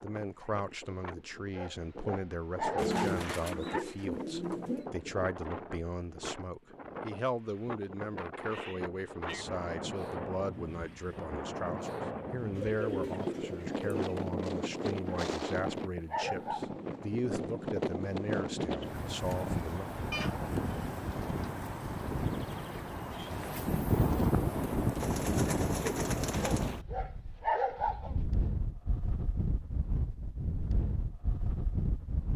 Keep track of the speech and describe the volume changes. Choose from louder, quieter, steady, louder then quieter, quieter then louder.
steady.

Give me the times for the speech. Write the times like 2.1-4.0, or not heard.
0.0-19.9.